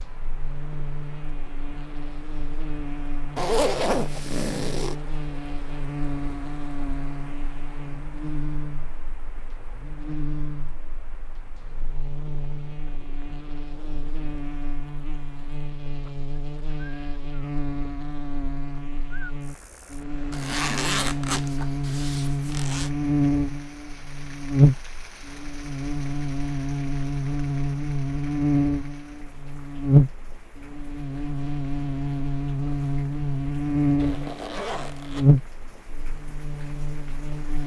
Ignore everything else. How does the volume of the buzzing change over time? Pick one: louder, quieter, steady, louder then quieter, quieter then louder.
louder.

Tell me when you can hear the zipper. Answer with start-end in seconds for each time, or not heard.
3.4-5.0, 20.3-22.9, 34.0-35.2.